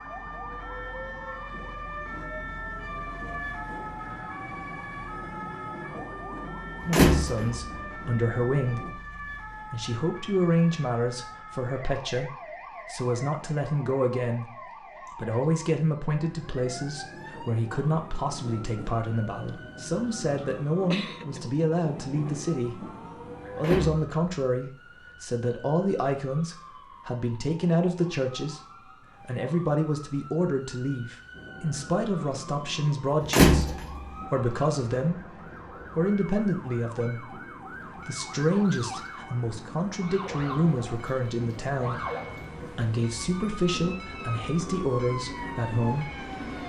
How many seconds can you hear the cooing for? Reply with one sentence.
The cooing can't be heard in this clip.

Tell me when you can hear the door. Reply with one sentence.
You can hear the door from 6.9 to 7.7 s, from 23.6 to 24.1 s and from 33.3 to 34.0 s.